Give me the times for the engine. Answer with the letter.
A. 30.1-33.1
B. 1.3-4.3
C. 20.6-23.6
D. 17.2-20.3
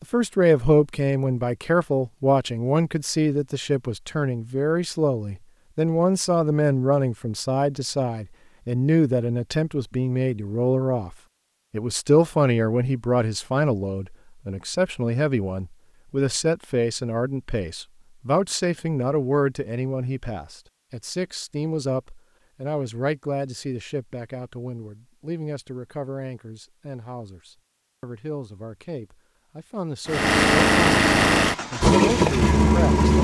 A.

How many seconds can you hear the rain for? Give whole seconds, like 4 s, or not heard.
not heard.